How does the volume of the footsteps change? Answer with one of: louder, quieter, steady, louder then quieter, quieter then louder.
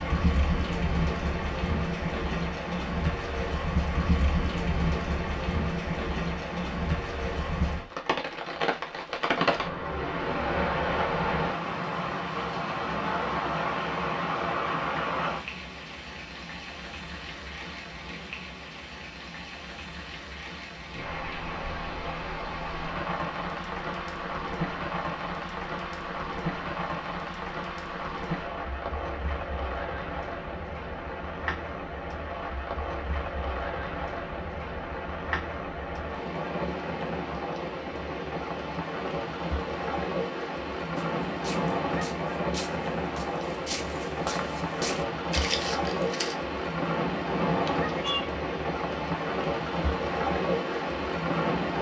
louder.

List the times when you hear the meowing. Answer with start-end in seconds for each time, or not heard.
47.6-48.3.